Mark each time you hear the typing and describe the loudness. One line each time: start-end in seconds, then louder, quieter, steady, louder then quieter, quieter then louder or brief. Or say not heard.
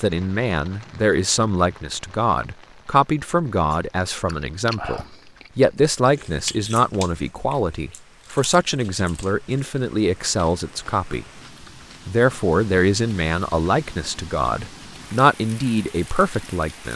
not heard.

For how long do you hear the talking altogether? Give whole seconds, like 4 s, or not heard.
16 s.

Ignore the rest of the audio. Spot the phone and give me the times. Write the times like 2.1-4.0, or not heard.
not heard.